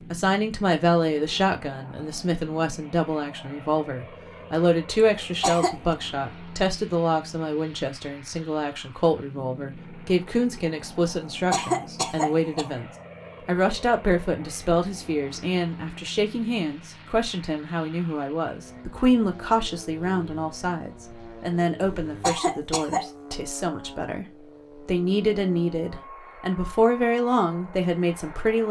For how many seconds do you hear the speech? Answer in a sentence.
You can hear the speech for 28 seconds altogether.